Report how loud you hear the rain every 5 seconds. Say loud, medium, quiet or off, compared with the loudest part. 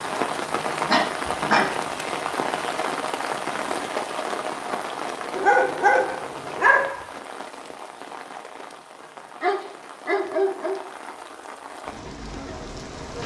loud, medium, medium.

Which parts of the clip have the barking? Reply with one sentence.
You can hear the barking from 0.8 to 1.6 s, from 5.3 to 7.0 s and from 9.4 to 10.8 s.